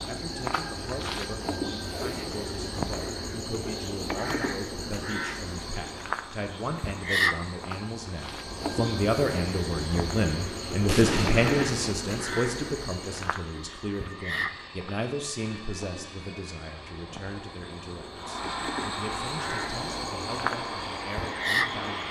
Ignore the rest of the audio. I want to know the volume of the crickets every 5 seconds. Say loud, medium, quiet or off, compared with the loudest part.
loud, loud, loud, medium, loud.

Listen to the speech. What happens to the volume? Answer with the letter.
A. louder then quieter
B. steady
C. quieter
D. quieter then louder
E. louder
A.